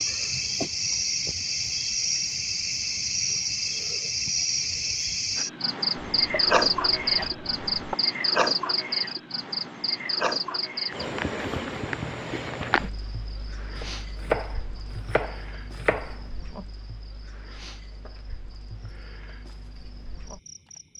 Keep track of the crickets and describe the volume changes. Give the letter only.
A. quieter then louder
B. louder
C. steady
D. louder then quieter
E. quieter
E.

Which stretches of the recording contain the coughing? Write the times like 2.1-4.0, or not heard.
not heard.